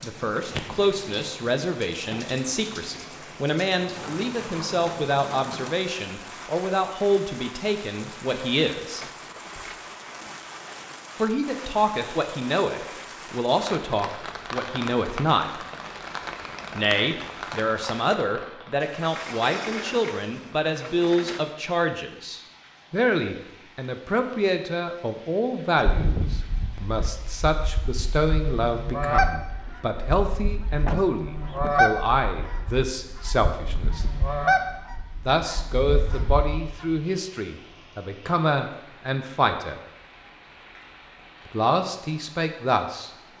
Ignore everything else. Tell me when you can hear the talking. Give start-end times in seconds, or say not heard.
0.0-9.1, 11.2-15.7, 16.8-34.0, 35.2-39.8, 41.5-43.1.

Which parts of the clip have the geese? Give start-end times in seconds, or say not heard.
25.8-37.0.